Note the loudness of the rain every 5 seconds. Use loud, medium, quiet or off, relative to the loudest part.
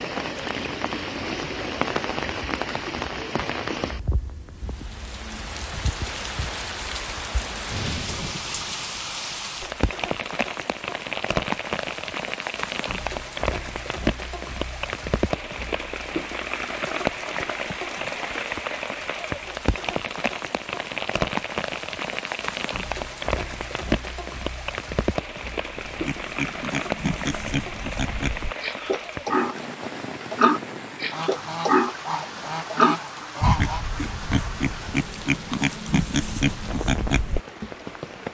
loud, loud, loud, loud, loud, loud, medium, medium.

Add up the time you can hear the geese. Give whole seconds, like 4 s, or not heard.
3 s.